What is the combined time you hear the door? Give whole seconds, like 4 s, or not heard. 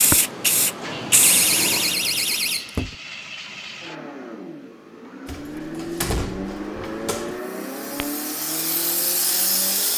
4 s.